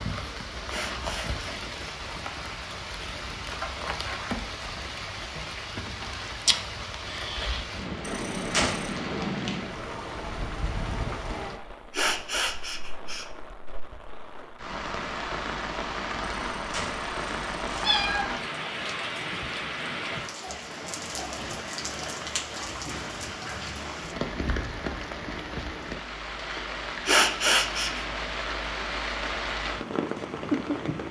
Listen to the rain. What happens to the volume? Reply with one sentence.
The loudness of the rain stays about the same.